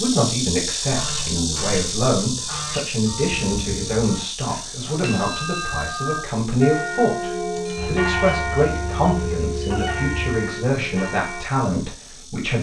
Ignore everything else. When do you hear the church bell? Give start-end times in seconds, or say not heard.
3.0-11.4.